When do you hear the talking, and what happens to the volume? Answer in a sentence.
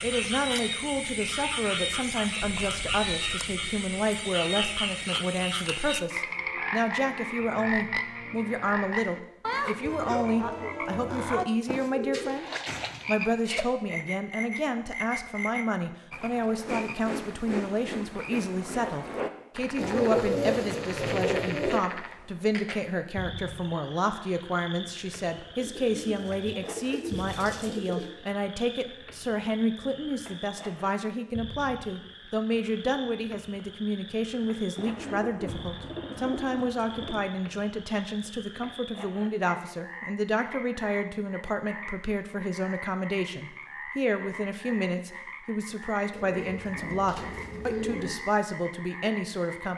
The talking can be heard from 0.0 to 49.7 s, at a steady volume.